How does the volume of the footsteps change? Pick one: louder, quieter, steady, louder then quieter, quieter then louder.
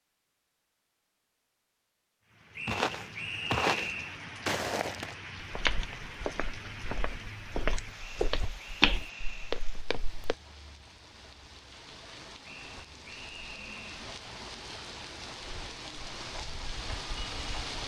quieter then louder.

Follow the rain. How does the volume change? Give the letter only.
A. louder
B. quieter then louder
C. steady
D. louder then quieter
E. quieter
B.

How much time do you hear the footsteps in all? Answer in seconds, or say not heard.
8 s.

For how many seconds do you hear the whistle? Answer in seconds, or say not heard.
5 s.